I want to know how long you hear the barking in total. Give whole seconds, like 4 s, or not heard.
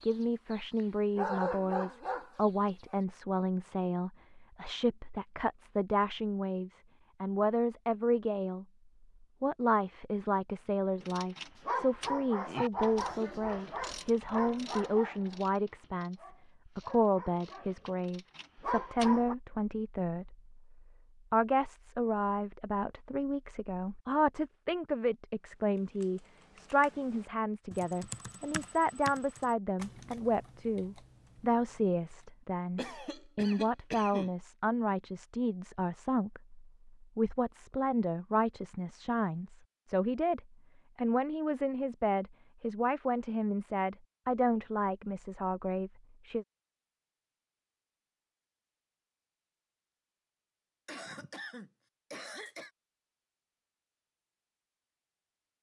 11 s.